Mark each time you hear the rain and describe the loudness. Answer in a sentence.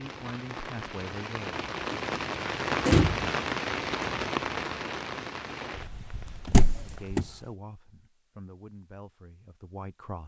You can hear the rain from 0.0 to 7.5 s, getting louder then quieter.